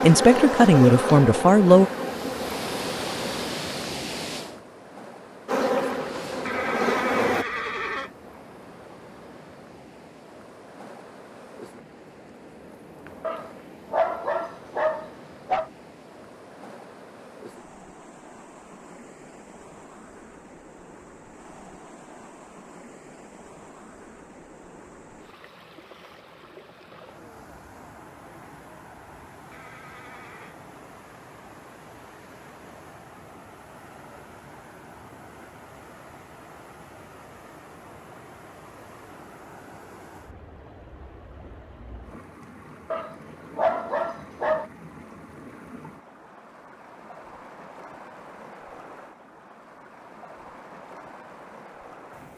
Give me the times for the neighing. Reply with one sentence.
The neighing can be heard from 6.5 to 8.1 s and from 29.5 to 30.6 s.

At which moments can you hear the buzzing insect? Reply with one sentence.
The buzzing insect can be heard from 0.0 to 3.5 s and from 5.5 to 7.5 s.